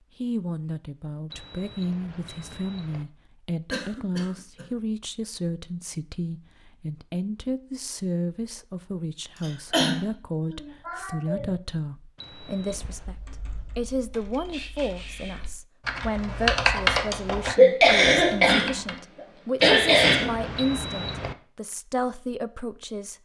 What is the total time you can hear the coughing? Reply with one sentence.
The coughing can be heard for 5 seconds in total.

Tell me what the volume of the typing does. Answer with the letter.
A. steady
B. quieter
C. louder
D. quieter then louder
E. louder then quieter
E.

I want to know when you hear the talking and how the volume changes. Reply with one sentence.
You can hear the talking from 0.2 to 23.1 s, at a steady volume.